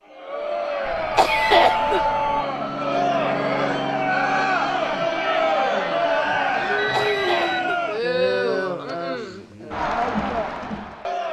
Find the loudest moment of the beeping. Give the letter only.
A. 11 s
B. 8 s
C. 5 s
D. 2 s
D.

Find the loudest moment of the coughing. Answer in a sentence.
The loudest moment of the coughing is at 2 seconds.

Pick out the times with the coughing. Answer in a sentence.
The coughing can be heard from 1.1 to 2.0 s and from 6.9 to 7.7 s.